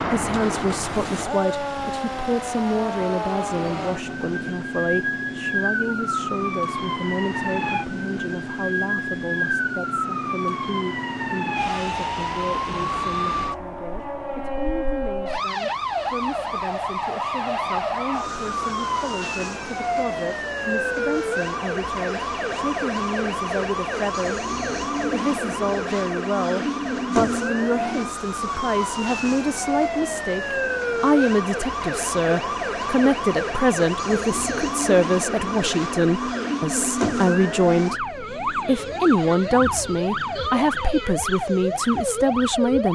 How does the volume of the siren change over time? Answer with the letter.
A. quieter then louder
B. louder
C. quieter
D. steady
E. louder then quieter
D.